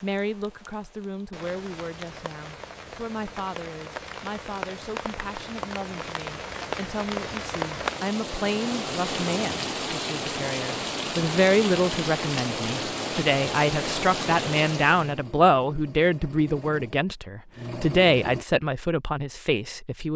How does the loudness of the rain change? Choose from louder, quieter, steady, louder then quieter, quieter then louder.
louder.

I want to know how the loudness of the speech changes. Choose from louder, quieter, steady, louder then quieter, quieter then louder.
louder.